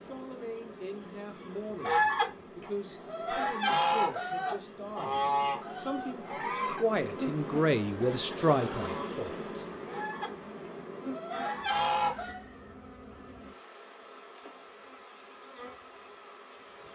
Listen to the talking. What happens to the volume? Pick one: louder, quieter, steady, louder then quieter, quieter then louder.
louder.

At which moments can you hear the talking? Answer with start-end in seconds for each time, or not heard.
0.1-9.7.